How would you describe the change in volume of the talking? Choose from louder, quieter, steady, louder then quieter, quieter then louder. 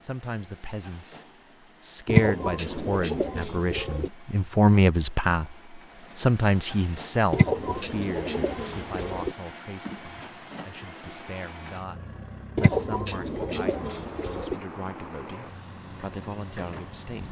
louder then quieter.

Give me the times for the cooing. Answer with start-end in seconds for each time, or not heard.
2.0-4.1, 7.3-9.3, 12.6-14.6.